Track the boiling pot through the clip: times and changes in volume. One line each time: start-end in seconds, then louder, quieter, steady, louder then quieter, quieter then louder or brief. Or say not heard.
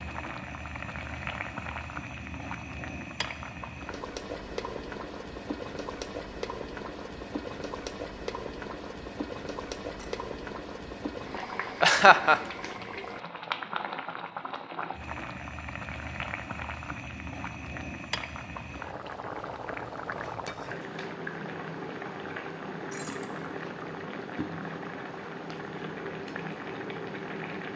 0.0-27.7 steady.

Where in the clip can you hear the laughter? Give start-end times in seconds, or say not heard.
11.8-12.4.